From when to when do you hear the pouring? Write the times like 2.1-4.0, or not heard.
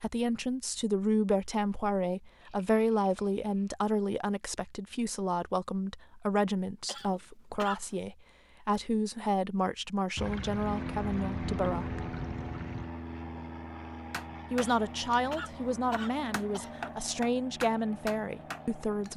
2.4-3.8, 10.2-12.9.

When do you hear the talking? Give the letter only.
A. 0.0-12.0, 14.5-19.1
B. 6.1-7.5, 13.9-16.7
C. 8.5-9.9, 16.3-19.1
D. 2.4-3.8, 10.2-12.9
A.